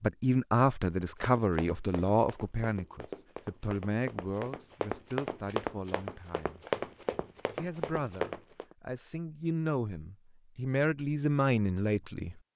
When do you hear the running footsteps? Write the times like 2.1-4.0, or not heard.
1.0-8.8.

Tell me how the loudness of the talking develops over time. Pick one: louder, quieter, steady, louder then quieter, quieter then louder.
quieter then louder.